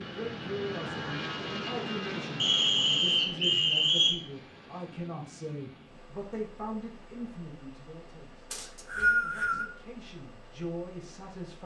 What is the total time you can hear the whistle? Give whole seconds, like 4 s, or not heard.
3 s.